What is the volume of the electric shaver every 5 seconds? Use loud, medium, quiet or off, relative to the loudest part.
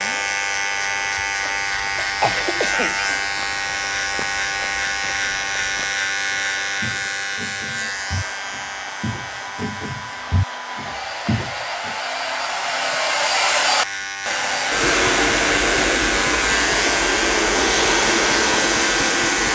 loud, loud, medium, loud.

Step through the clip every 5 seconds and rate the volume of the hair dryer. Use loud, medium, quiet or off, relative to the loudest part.
quiet, quiet, loud, loud.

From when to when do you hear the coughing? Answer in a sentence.
The coughing can be heard from 1.4 to 3.3 s.